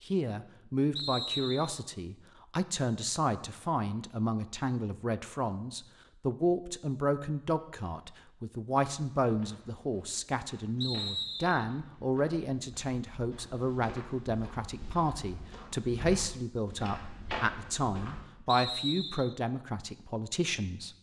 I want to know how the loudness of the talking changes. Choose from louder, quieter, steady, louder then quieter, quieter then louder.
steady.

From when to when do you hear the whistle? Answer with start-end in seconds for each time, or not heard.
0.9-1.8, 10.8-11.7, 18.4-19.4.